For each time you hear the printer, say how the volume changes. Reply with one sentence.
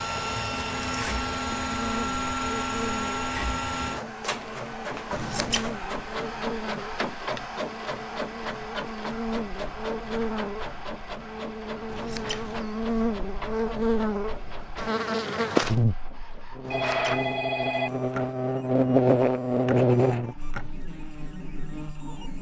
You can hear the printer from 0.0 to 22.3 s, getting quieter.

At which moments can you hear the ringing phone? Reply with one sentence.
The ringing phone can be heard from 16.7 to 18.4 s.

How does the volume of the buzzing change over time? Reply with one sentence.
The loudness of the buzzing goes up.